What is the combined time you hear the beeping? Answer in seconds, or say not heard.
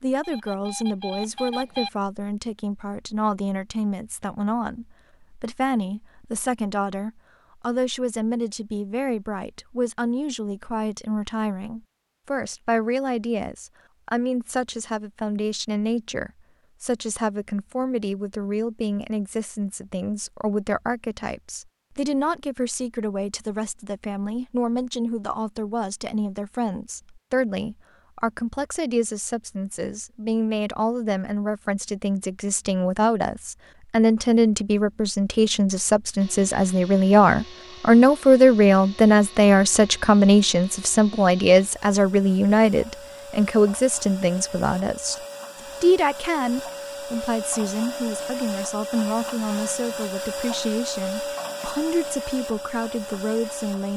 2 s.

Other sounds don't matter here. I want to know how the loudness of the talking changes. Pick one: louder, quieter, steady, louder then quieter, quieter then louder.
louder then quieter.